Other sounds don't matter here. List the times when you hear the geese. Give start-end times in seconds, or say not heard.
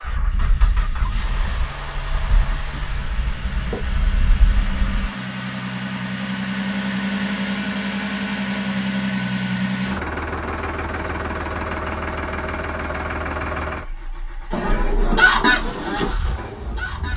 0.0-5.0, 14.5-17.1.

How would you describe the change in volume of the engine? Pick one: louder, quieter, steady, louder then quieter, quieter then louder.
louder then quieter.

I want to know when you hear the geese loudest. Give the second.
15 s.